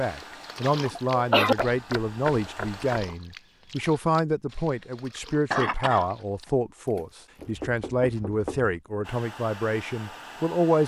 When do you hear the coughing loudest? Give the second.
1 s.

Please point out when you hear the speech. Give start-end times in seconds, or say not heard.
0.0-10.8.